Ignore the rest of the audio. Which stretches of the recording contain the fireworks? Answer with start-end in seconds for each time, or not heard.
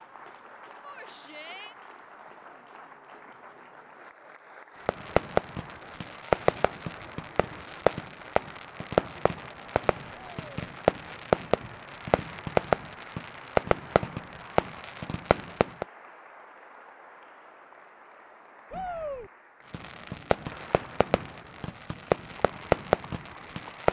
4.8-15.8, 19.7-23.8.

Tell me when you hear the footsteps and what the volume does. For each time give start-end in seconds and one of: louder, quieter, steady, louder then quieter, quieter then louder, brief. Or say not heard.
not heard.